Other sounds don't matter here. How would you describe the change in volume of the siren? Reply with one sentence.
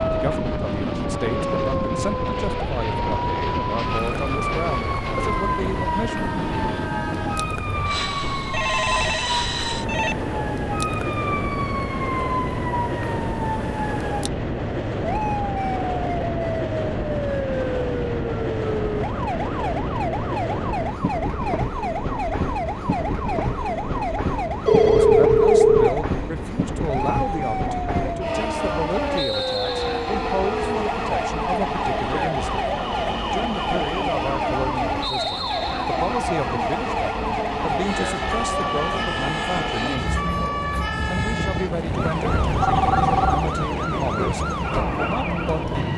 The loudness of the siren stays about the same.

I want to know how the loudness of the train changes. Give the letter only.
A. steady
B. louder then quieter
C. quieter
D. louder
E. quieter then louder
A.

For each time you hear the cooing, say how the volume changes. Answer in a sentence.
You can't hear the cooing here.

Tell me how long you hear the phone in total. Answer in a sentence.
You can hear the phone for 4 seconds altogether.